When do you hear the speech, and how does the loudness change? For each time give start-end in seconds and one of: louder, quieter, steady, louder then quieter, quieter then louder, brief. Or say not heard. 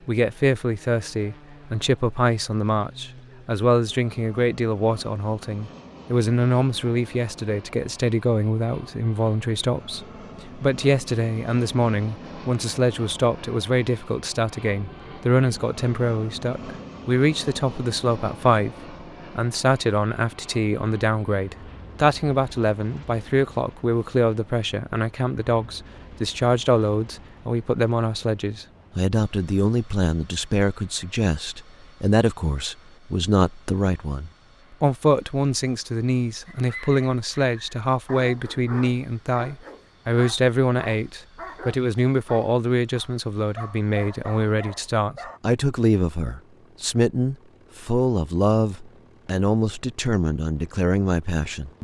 0.1-51.7 steady.